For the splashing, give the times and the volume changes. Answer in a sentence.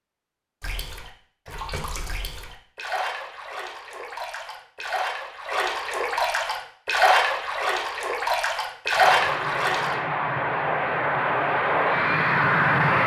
You can hear the splashing from 0.6 to 9.9 s, getting louder.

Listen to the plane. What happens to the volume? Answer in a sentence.
The volume of the plane goes up.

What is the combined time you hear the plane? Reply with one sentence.
The plane can be heard for 4 seconds in total.